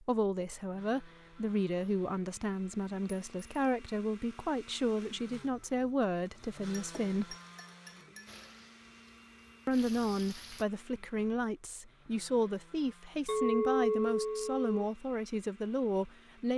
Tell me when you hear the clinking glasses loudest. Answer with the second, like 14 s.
14 s.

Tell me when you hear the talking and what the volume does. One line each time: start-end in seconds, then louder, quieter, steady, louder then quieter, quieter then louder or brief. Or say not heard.
0.0-7.3 steady
9.7-16.5 steady.